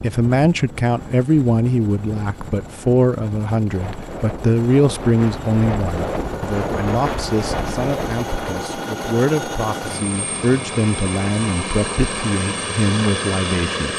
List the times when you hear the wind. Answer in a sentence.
The wind can be heard from 0.0 to 8.7 s.